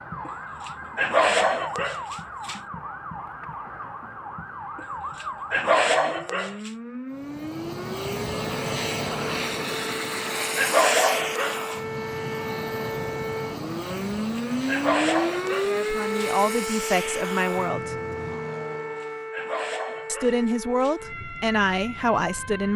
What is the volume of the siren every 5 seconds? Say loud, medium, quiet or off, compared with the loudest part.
medium, medium, loud, loud, medium.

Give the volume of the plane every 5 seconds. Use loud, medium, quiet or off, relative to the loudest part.
off, loud, loud, medium, off.